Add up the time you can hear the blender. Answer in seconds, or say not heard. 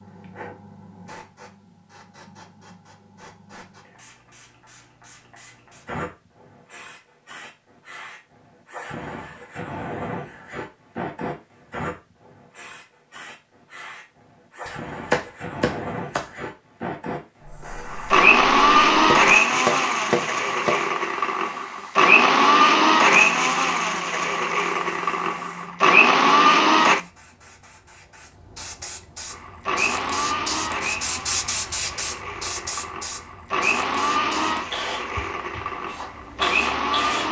17 s.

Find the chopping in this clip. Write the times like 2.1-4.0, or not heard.
14.7-16.2, 19.1-20.9.